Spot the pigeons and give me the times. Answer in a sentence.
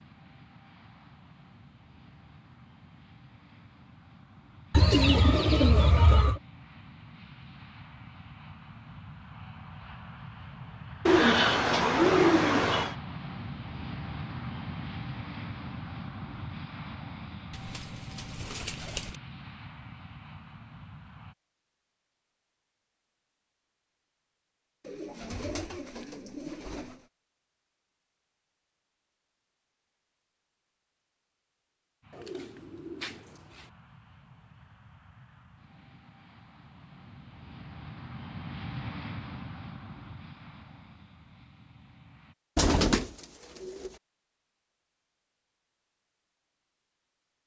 You can hear the pigeons from 4.7 to 6.4 s, from 11.1 to 12.9 s, from 17.5 to 19.1 s, from 24.9 to 27.0 s, from 32.1 to 33.6 s and from 42.5 to 43.9 s.